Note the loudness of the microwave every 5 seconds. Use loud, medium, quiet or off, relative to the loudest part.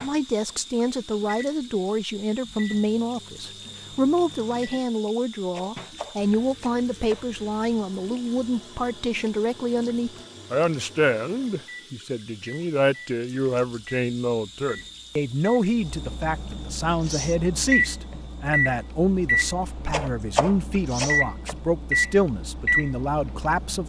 quiet, quiet, quiet, loud, loud.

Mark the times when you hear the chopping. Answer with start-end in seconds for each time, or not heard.
5.5-7.2, 19.9-21.6.